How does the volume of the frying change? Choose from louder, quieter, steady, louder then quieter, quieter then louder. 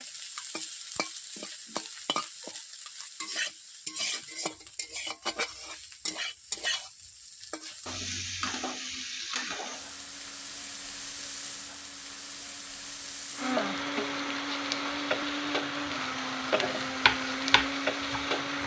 steady.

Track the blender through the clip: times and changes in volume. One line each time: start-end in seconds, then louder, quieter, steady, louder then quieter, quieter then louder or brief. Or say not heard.
9.7-18.6 louder.